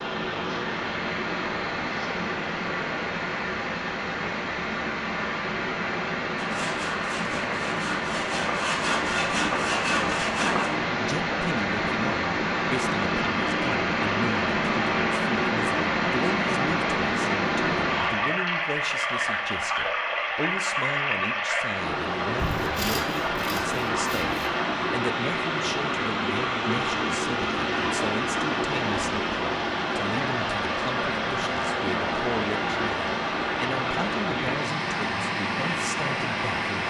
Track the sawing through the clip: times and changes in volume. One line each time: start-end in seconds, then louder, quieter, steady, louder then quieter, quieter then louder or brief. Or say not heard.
6.3-10.7 louder
22.4-24.4 brief.